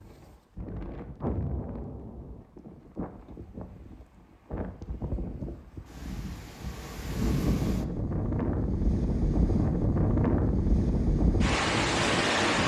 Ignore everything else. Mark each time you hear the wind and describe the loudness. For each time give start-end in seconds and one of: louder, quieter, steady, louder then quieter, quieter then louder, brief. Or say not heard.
0.0-12.6 louder.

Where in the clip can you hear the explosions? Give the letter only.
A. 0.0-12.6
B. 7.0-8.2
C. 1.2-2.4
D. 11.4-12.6
C.